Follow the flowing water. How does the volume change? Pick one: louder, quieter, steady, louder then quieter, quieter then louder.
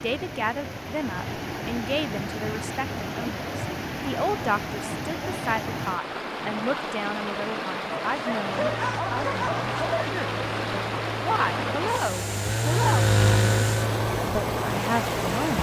steady.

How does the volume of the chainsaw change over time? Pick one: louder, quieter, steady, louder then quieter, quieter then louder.
louder then quieter.